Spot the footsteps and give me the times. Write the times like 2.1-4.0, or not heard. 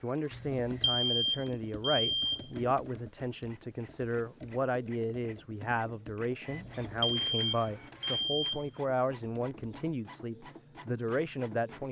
not heard.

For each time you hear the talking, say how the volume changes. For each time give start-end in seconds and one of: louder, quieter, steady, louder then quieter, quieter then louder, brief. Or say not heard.
0.0-11.8 steady.